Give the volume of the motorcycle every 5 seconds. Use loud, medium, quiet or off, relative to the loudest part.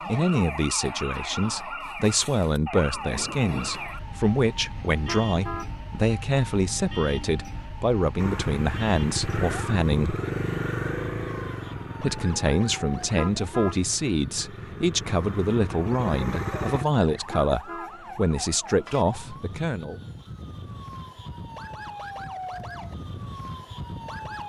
off, loud, loud, loud, off.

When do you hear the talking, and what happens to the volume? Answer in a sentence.
You can hear the talking from 0.1 to 10.2 s, at a steady volume; and from 12.0 to 20.0 s, at a steady volume.